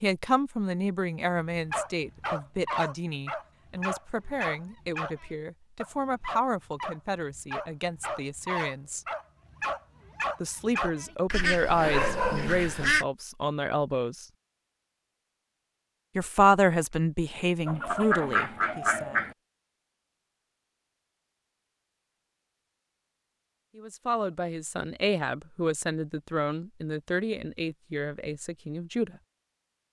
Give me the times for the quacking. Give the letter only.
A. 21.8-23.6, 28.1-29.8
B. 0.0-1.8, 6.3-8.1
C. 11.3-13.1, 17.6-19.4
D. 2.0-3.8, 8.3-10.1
C.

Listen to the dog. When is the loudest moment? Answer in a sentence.
The loudest moment of the dog is at 12 seconds.